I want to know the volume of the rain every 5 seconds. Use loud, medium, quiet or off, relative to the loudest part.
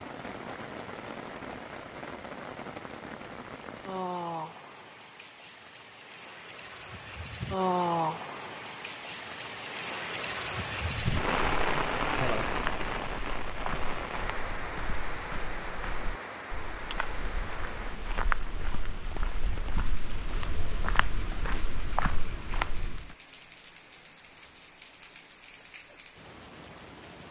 medium, loud, loud, medium, quiet, quiet.